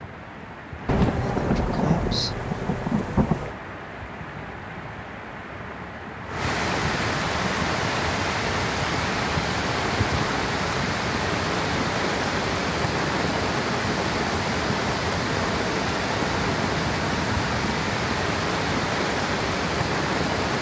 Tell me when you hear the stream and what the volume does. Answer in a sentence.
You can hear the stream from 0.0 to 20.5 s, getting louder.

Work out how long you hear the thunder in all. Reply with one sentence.
The thunder can be heard for 3 seconds in total.